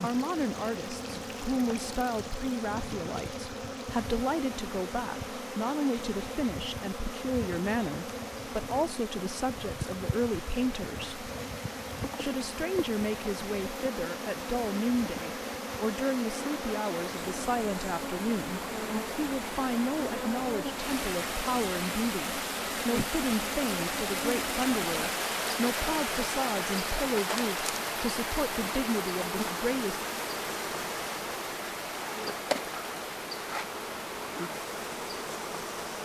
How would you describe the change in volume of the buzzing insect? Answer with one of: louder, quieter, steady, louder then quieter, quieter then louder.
steady.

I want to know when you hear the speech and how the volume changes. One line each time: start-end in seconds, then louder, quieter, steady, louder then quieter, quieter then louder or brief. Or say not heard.
0.0-11.2 steady
12.2-30.0 steady.